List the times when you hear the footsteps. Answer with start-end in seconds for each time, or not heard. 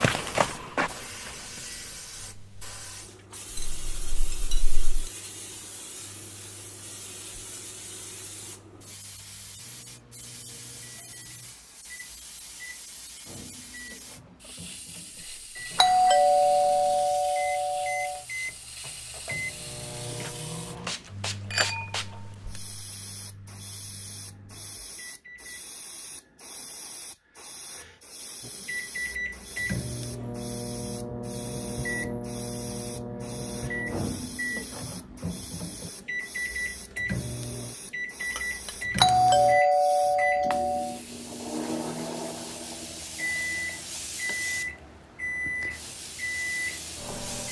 0.0-1.6.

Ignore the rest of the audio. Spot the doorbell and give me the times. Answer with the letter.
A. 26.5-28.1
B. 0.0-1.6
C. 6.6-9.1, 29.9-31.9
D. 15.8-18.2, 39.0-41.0
D.